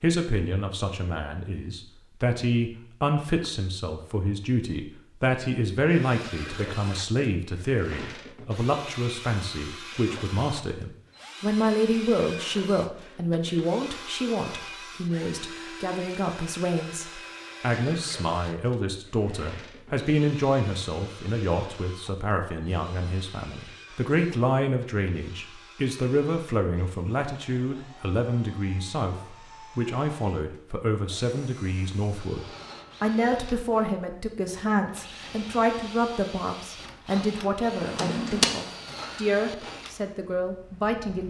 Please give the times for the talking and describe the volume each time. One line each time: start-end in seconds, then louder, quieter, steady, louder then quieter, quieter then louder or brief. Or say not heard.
0.0-41.2 steady.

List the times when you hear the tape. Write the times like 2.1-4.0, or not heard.
not heard.